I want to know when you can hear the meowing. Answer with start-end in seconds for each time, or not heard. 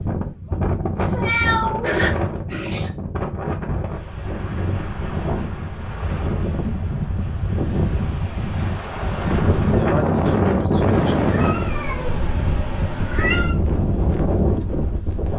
1.0-2.9, 10.9-13.6.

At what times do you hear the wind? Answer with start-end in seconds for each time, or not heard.
0.0-15.3.